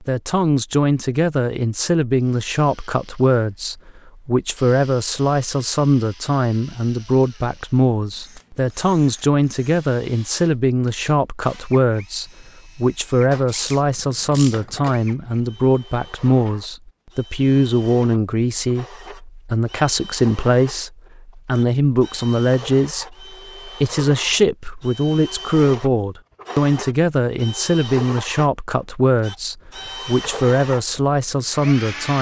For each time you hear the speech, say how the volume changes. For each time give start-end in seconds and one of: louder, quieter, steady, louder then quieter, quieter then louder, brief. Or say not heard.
0.0-32.1 steady.